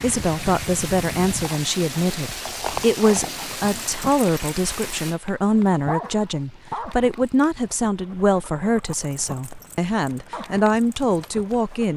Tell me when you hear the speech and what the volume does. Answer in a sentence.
The speech can be heard from 0.0 to 11.9 s, at a steady volume.